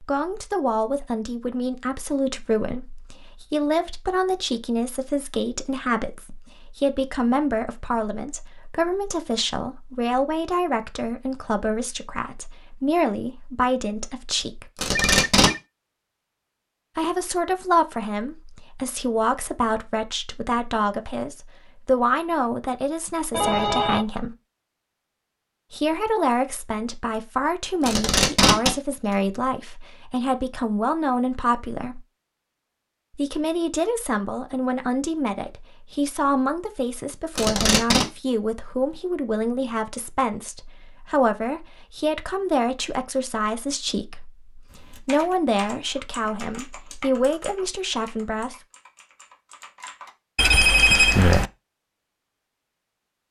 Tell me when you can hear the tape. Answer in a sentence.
You can hear the tape from 14.8 to 15.5 s, from 27.8 to 28.7 s and from 37.4 to 38.0 s.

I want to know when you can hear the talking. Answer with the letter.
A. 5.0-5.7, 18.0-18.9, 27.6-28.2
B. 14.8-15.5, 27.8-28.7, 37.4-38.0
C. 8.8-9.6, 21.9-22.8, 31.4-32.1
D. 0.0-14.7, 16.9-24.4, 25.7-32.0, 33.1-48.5
D.